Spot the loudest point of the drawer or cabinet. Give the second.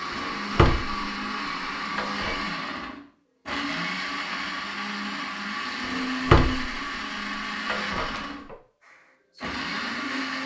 6 s.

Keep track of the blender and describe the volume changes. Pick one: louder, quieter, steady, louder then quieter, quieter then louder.
steady.